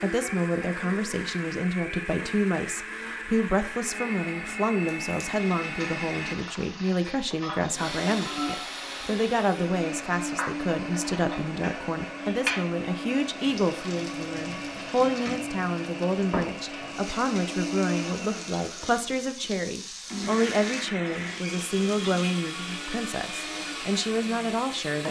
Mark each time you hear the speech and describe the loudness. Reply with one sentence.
The speech can be heard from 0.0 to 25.0 s, at a steady volume.